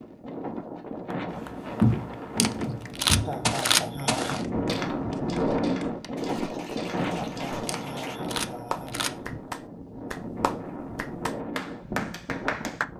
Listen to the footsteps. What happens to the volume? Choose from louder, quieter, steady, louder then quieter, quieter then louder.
quieter.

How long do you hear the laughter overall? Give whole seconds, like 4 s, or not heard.
3 s.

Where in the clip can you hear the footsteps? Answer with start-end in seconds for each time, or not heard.
1.3-7.7.